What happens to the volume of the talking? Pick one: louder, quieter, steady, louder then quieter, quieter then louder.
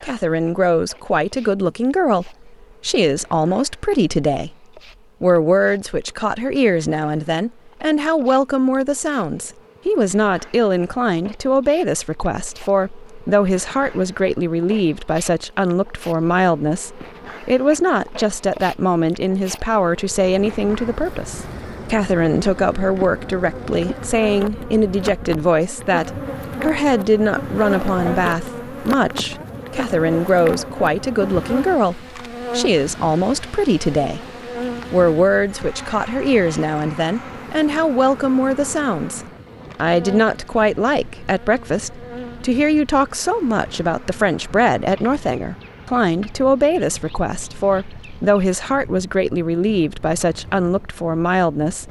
steady.